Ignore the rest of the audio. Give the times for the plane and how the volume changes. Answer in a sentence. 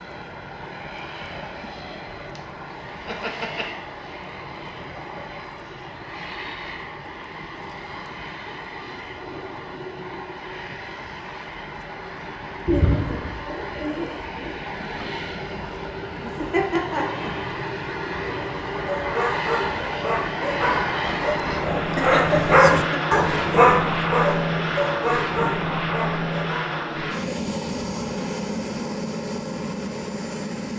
You can hear the plane from 0.0 to 30.7 s, getting louder.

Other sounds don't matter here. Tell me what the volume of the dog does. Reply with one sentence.
The volume of the dog goes up, then down.